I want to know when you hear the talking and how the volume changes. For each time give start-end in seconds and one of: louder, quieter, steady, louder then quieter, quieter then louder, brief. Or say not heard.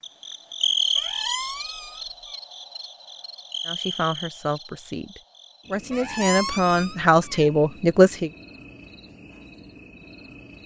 3.6-8.3 quieter then louder.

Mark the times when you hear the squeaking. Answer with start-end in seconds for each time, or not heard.
0.9-2.4, 5.9-7.5.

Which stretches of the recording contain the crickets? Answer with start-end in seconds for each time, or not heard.
0.0-10.6.